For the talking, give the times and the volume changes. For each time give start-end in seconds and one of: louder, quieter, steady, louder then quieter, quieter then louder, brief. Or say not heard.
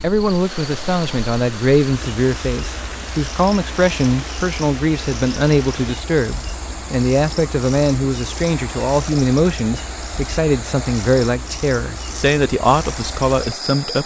0.0-14.0 steady.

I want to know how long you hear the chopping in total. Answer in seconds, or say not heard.
not heard.